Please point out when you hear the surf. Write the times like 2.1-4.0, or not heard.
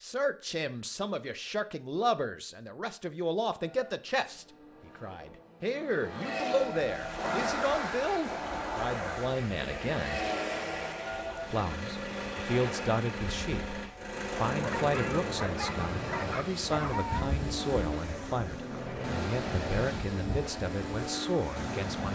6.8-22.1.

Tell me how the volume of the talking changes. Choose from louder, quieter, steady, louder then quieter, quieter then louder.
steady.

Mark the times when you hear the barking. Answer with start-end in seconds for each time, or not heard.
14.6-17.4.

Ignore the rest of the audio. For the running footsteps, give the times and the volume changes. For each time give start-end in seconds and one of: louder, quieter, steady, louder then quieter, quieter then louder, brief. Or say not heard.
not heard.